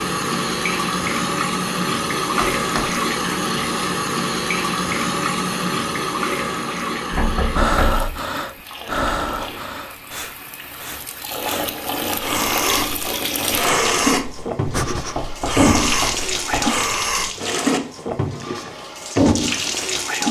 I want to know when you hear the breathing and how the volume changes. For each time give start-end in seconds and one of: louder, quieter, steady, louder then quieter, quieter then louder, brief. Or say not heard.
7.5-17.3 quieter then louder.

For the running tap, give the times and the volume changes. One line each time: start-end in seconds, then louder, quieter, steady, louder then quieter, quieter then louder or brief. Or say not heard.
0.0-20.2 quieter then louder.